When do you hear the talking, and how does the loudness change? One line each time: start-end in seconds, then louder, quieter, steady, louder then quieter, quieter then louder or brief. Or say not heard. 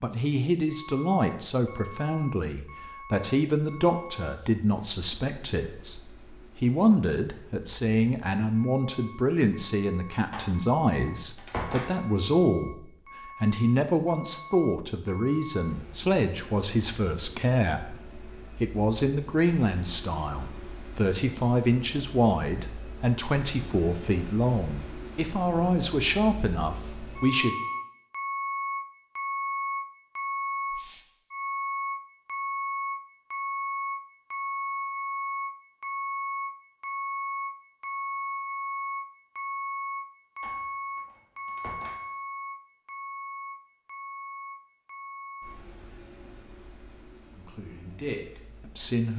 0.0-27.6 steady
47.4-49.1 brief.